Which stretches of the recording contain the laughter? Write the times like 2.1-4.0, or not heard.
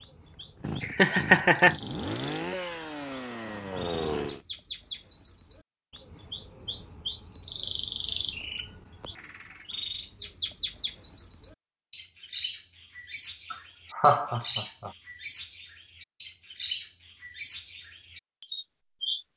0.4-1.8, 8.6-9.2, 13.5-14.9.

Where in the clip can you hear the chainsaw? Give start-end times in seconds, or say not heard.
0.0-4.4.